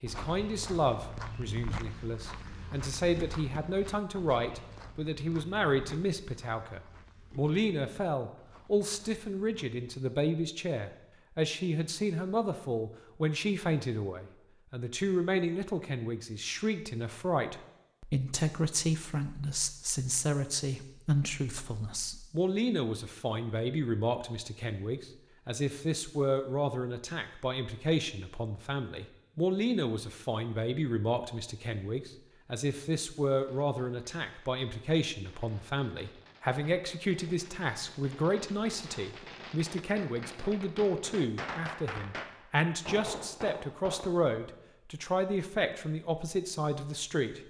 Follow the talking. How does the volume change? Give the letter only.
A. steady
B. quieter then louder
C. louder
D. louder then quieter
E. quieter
A.